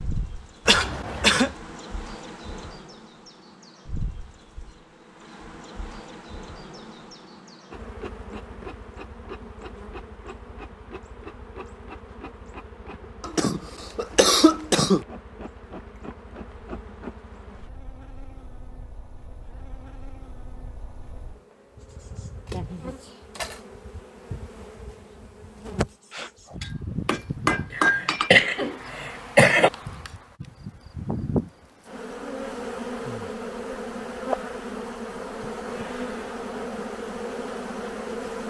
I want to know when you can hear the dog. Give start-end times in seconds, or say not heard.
not heard.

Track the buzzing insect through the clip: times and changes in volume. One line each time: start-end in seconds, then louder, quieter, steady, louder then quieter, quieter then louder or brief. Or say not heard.
0.0-38.4 louder.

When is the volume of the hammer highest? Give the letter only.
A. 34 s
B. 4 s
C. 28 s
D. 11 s
C.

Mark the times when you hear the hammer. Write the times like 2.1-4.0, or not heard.
26.1-28.3.